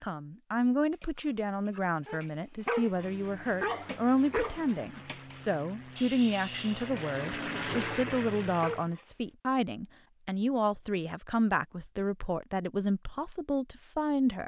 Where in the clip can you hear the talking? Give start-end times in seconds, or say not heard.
0.0-14.4.